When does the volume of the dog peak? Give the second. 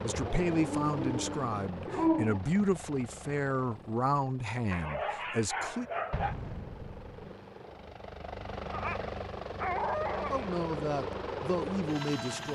2 s.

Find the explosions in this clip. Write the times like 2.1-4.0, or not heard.
6.1-7.3.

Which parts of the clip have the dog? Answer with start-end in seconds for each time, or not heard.
0.3-2.4, 4.7-6.3, 8.7-10.4.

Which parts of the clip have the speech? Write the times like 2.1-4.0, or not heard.
0.0-5.8, 10.3-12.5.